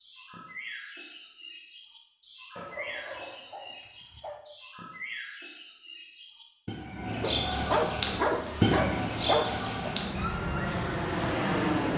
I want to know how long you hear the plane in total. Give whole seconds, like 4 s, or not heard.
4 s.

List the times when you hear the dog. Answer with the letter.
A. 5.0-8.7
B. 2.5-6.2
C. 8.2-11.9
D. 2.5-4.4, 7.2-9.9
D.